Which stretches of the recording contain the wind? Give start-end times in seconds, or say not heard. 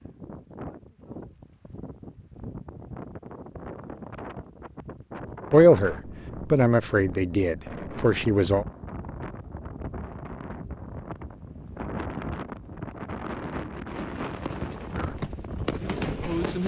0.0-16.6.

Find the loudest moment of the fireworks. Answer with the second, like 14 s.
16 s.